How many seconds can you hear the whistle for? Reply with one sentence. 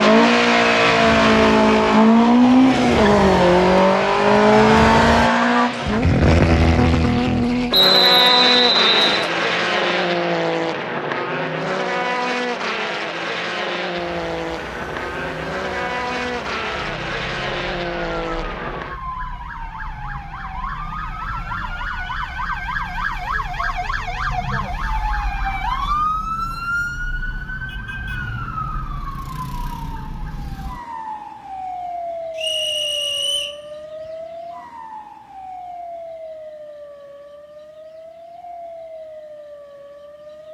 The whistle can be heard for 3 seconds in total.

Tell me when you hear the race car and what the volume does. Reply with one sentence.
The race car can be heard from 0.0 to 19.0 s, getting quieter.